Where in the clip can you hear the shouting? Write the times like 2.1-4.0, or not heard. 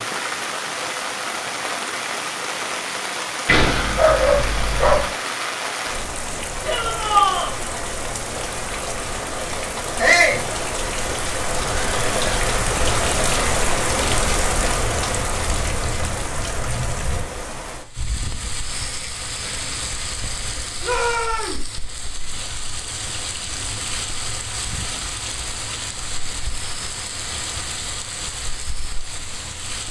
6.6-7.5, 9.9-10.4, 20.8-21.6.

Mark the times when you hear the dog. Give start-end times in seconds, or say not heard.
3.5-5.1.